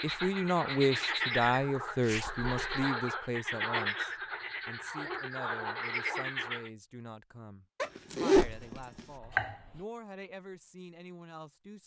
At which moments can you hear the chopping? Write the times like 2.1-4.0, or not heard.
8.3-9.8.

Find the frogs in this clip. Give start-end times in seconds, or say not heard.
0.0-6.7.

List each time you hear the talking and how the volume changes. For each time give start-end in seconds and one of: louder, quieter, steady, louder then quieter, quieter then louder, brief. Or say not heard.
0.0-11.8 quieter.